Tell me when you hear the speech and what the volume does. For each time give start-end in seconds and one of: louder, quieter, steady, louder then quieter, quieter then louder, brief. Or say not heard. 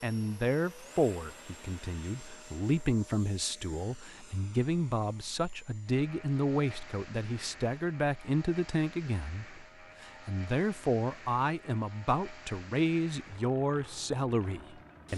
0.0-15.1 steady.